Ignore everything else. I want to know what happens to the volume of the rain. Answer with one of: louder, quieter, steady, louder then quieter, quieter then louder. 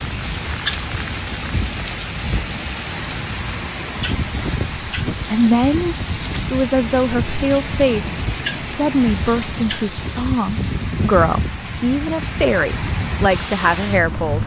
steady.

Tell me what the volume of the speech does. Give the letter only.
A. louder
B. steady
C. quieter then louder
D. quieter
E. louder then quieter
B.